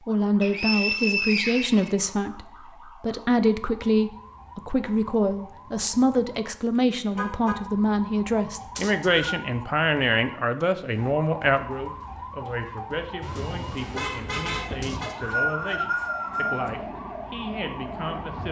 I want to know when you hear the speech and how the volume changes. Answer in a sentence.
The speech can be heard from 0.1 to 18.4 s, getting quieter.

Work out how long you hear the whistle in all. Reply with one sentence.
You can hear the whistle for 4 seconds altogether.